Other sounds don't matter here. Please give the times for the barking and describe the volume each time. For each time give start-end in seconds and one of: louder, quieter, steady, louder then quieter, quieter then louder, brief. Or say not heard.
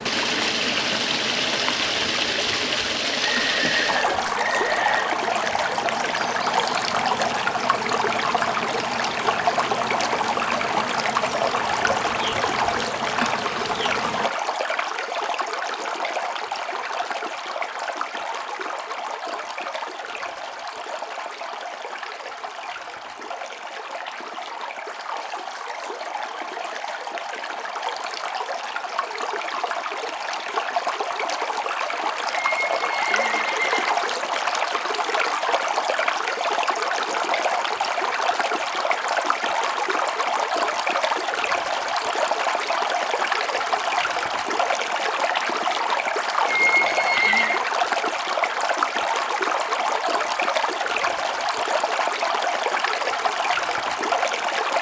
not heard.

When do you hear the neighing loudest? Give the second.
47 s.